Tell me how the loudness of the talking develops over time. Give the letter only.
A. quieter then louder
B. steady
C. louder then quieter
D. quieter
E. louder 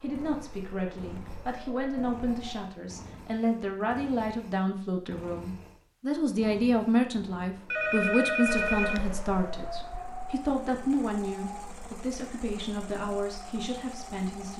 C.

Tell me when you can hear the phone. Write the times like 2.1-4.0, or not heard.
7.7-9.1.